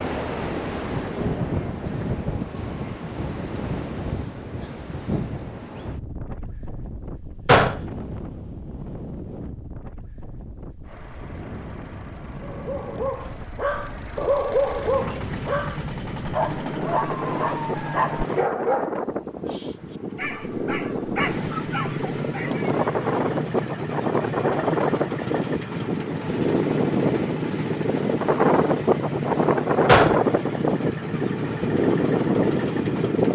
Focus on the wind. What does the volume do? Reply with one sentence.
The volume of the wind goes down, then up.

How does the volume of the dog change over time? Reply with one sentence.
The loudness of the dog goes down.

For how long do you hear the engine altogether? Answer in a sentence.
The engine can be heard for 20 seconds in total.